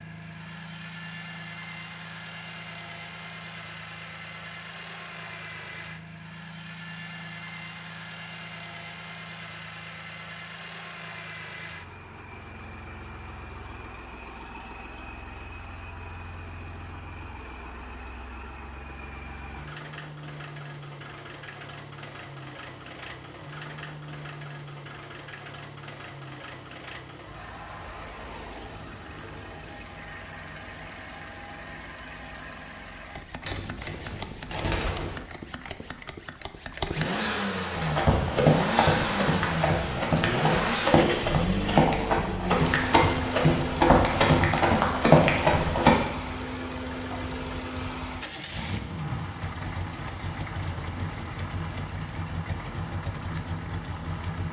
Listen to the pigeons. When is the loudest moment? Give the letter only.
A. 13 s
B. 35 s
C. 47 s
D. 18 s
B.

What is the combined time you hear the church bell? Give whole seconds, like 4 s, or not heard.
not heard.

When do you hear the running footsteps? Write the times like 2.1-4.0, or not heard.
37.8-46.0.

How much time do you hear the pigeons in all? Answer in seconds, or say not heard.
2 s.